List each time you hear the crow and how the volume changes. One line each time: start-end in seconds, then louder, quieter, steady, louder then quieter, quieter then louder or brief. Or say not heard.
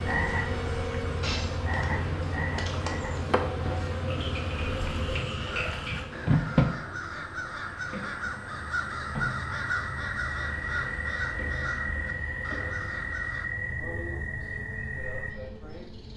5.3-13.5 louder then quieter.